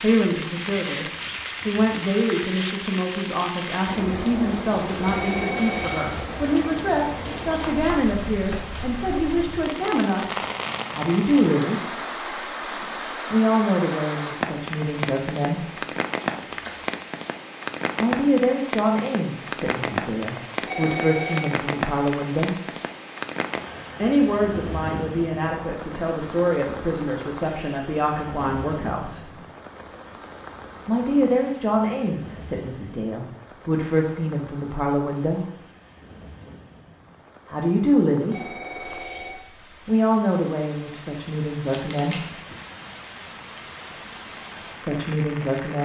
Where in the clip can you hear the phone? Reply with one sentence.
The phone can be heard from 5.0 to 6.2 s, from 20.6 to 21.4 s and from 38.3 to 39.5 s.